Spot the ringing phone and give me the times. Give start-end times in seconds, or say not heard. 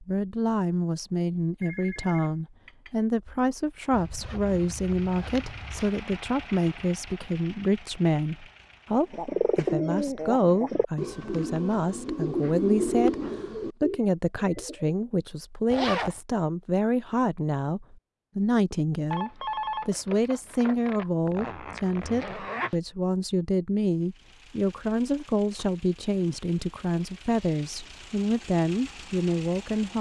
1.6-3.0, 19.1-21.1.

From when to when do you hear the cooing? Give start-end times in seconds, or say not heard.
9.1-14.9.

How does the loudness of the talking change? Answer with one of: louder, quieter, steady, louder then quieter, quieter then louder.
steady.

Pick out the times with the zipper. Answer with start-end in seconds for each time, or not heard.
3.9-5.9, 15.7-16.2, 21.2-22.8.